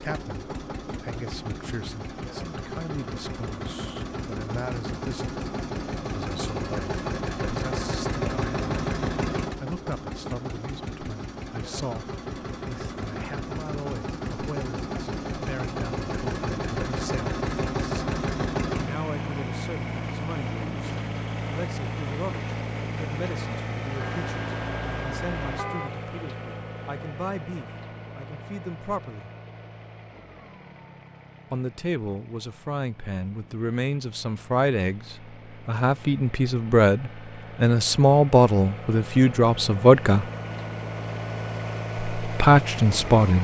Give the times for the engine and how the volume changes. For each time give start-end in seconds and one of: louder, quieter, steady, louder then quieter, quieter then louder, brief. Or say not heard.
0.0-43.3 quieter then louder.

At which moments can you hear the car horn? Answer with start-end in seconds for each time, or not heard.
23.9-25.9.